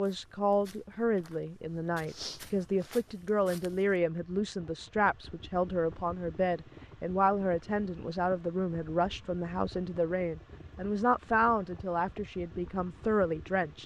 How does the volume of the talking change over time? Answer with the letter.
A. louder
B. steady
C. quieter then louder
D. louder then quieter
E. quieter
B.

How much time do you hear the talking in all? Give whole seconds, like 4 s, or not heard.
14 s.